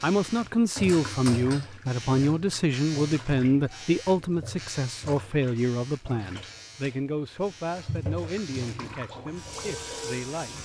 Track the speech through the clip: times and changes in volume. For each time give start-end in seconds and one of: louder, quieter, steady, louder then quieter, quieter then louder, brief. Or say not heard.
0.0-10.6 quieter.